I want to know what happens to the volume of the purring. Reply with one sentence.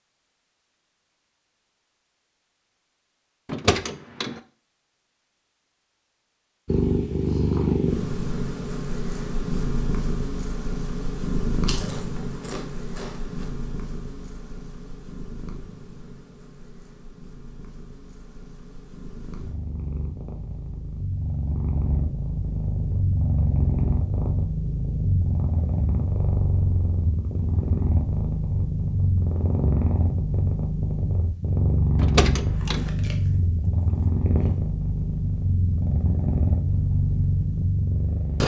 The loudness of the purring goes down, then up.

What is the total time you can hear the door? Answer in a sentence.
You can hear the door for 2 seconds altogether.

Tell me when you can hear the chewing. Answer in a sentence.
The chewing can be heard from 11.7 to 13.4 s and from 32.5 to 34.5 s.